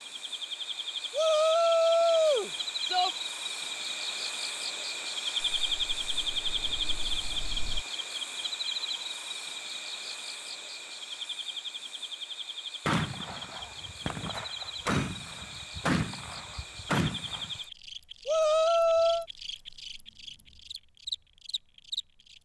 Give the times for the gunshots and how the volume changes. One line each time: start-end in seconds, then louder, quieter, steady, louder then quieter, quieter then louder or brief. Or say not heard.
12.8-17.6 louder.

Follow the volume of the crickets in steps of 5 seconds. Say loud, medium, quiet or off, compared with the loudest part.
loud, loud, medium, medium, medium.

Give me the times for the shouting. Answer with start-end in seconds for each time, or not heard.
1.1-3.1, 18.2-19.2.